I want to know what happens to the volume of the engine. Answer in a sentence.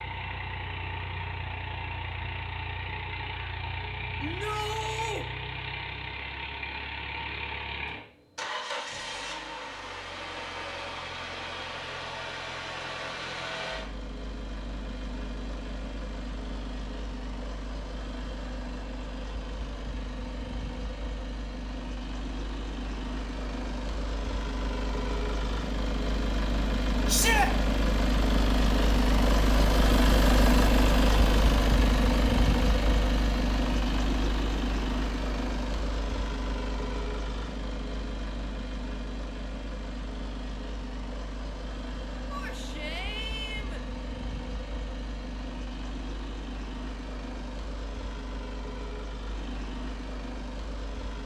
The loudness of the engine goes up, then down.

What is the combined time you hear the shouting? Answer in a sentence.
You can hear the shouting for 3 seconds altogether.